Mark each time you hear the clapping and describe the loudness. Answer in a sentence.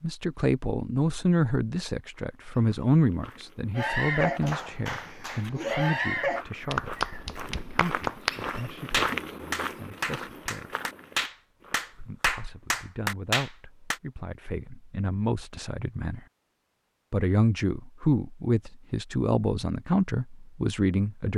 The clapping can be heard from 3.8 to 14.0 s, at a steady volume.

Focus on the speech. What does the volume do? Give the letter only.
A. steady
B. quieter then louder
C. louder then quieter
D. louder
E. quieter
B.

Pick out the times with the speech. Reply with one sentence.
You can hear the speech from 0.0 to 10.8 s, from 11.9 to 16.2 s and from 17.1 to 21.3 s.